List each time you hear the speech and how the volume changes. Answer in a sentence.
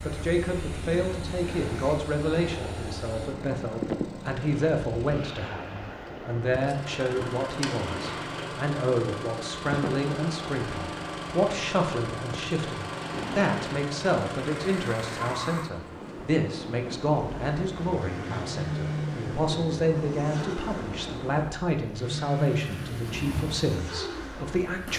The speech can be heard from 0.0 to 24.9 s, at a steady volume.